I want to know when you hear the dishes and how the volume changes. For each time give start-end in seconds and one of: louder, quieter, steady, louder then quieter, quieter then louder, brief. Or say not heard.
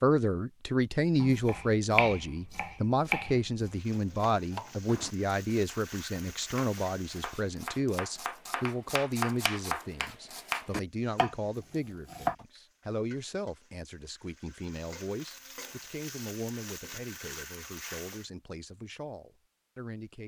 not heard.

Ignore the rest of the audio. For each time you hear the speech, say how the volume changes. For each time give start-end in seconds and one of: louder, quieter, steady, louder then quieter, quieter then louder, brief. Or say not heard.
0.0-20.2 quieter.